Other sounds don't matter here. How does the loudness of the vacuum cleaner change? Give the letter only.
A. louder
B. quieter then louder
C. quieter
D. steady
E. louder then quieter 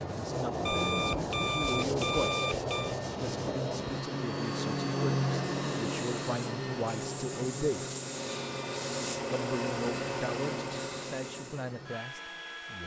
E.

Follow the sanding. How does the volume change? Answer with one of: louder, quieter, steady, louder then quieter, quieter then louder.
quieter then louder.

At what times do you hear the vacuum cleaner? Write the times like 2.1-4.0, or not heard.
0.0-12.8.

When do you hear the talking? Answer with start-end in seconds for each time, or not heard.
0.2-7.8, 9.3-12.8.